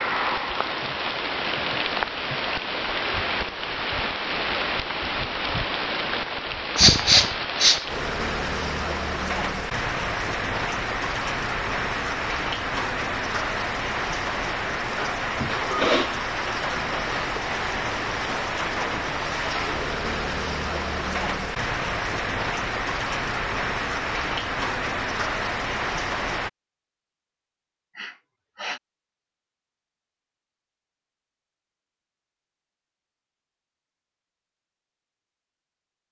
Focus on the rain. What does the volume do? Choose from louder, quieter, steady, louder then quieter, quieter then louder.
steady.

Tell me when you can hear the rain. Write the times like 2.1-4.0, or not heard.
0.0-26.5.